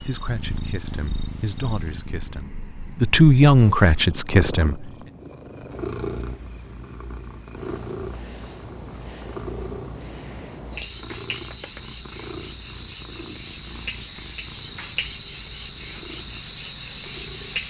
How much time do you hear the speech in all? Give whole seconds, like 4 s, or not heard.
5 s.